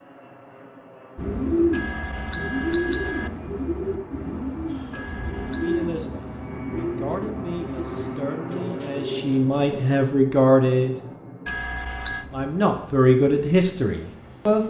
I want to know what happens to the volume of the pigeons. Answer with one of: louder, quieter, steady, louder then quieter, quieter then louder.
quieter.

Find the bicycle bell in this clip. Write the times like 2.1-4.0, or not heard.
1.7-3.3, 4.9-5.9, 11.4-12.2.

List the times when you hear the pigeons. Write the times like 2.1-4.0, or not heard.
1.1-9.9.